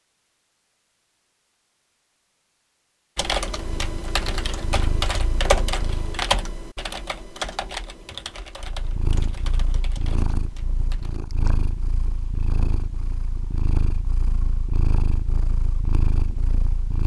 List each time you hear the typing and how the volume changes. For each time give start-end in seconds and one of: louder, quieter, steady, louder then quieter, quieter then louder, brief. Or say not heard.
3.1-11.2 louder then quieter.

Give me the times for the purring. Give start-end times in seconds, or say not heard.
3.5-6.3, 8.6-17.0.